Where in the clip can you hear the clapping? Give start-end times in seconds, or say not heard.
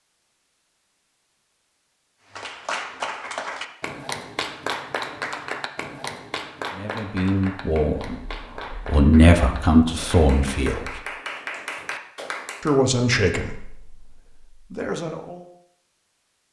2.3-12.8.